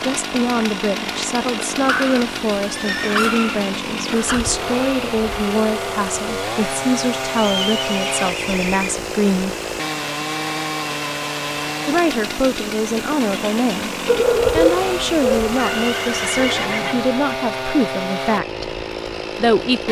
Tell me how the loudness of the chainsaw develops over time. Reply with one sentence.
The volume of the chainsaw stays about the same.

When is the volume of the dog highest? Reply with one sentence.
The loudest moment of the dog is at 15 seconds.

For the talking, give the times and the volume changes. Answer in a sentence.
The talking can be heard from 0.0 to 9.6 s, at a steady volume; from 11.8 to 18.8 s, at a steady volume; and briefly from 19.4 to 19.8 s.